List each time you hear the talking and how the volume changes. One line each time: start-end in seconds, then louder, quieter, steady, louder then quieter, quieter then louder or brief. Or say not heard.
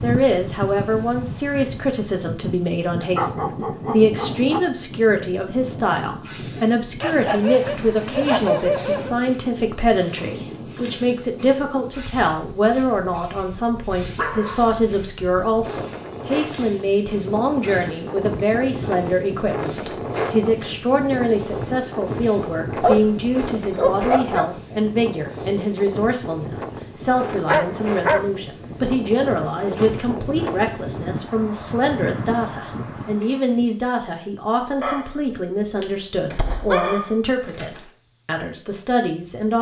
0.0-39.5 steady.